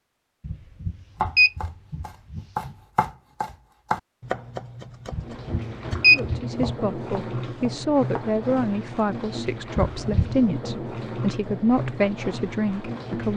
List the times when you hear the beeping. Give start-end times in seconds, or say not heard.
0.5-2.7, 5.1-6.7, 9.8-10.4.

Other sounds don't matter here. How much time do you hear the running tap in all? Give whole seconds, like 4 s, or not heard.
8 s.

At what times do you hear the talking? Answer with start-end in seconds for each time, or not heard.
6.0-13.3.